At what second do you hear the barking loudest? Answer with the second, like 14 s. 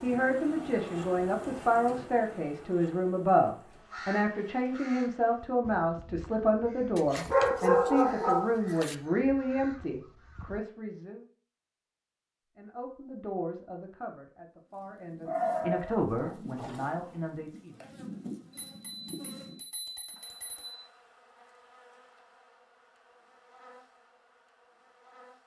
8 s.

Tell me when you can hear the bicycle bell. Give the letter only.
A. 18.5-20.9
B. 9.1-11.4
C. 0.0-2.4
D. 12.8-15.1
A.